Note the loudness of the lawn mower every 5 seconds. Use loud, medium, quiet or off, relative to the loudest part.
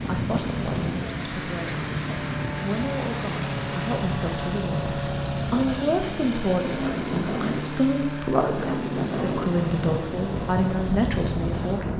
loud, loud, medium.